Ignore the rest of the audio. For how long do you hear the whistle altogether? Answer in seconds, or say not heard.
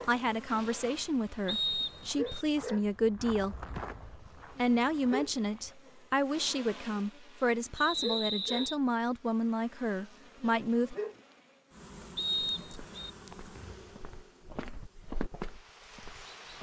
3 s.